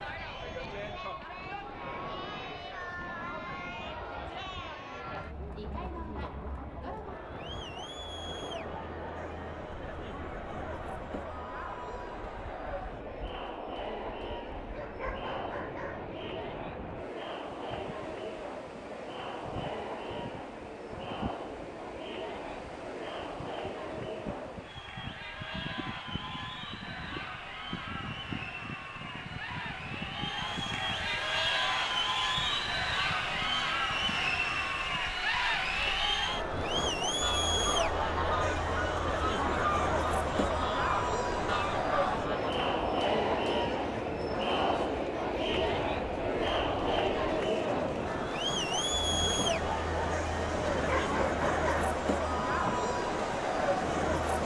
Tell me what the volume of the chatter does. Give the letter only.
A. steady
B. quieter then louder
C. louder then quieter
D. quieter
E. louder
E.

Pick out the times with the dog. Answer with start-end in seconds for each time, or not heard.
14.7-16.1, 50.6-52.0.